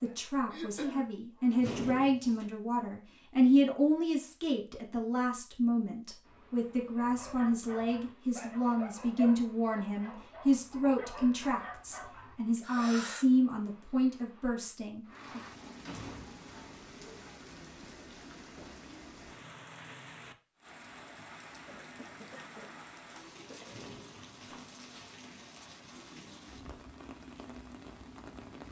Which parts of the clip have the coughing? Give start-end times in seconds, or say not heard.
0.5-1.1, 12.6-13.2, 21.6-23.6.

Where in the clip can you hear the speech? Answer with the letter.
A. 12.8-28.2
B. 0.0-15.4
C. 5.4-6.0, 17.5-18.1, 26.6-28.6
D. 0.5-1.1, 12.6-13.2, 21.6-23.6
B.